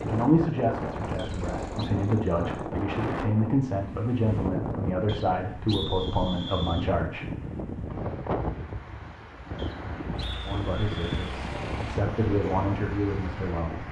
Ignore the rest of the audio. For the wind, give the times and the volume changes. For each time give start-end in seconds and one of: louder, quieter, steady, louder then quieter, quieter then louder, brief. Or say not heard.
0.0-13.8 steady.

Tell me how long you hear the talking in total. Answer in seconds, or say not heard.
11 s.